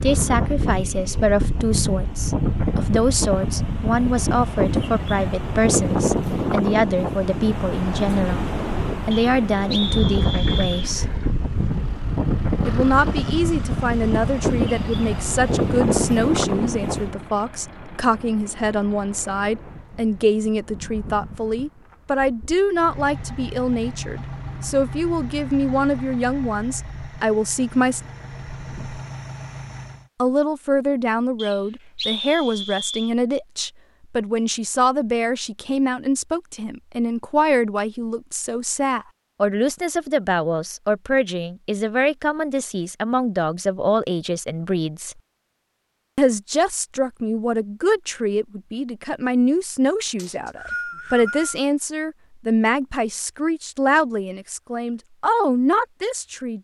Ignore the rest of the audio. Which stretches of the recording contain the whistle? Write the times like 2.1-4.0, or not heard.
9.1-10.9, 31.4-33.1, 50.1-51.5.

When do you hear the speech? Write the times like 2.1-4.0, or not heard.
0.0-11.1, 12.7-28.0, 30.1-45.1, 46.1-56.5.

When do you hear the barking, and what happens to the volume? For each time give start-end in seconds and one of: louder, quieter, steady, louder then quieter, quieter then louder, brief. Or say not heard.
not heard.